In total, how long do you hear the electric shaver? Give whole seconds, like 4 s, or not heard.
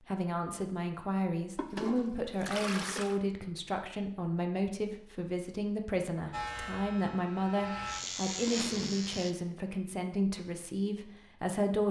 3 s.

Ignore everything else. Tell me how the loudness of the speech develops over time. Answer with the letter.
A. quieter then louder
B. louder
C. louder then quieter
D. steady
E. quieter
D.